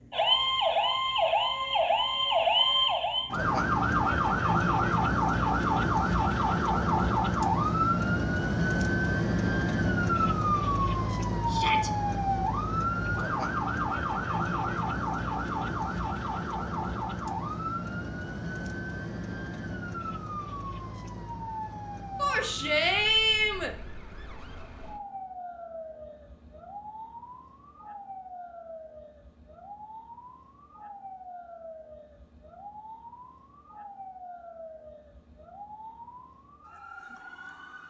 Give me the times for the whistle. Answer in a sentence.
You can't hear the whistle here.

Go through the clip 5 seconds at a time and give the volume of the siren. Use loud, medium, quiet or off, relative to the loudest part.
loud, loud, loud, medium, quiet, quiet, quiet, quiet.